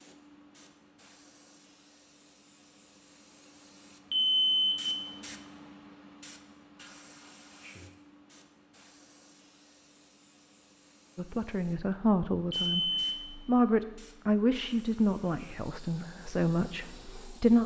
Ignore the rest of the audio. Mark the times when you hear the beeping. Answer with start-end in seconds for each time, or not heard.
4.1-5.0, 12.5-13.2.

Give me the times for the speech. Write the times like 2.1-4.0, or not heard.
11.2-17.6.